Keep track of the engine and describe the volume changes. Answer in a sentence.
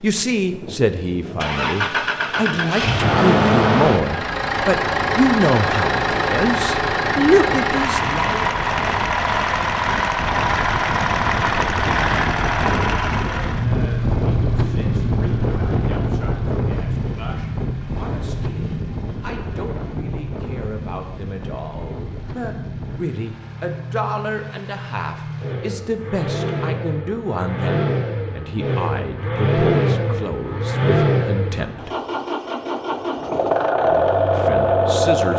The loudness of the engine goes down, then up.